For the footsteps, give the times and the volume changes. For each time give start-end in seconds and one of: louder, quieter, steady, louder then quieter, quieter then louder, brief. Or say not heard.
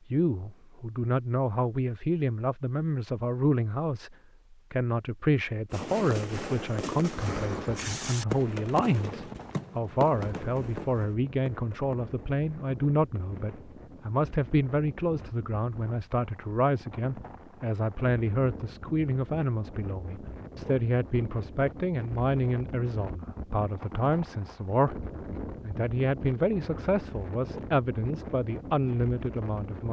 not heard.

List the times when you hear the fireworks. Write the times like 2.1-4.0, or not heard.
5.7-13.8.